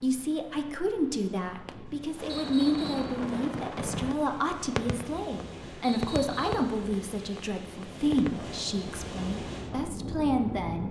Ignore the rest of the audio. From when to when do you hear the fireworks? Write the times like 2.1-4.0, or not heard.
1.6-8.5.